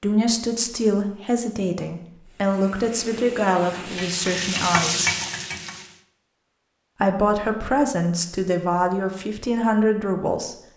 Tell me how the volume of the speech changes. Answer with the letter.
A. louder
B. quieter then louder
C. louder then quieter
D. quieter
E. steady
E.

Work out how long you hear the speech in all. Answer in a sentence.
You can hear the speech for 9 seconds altogether.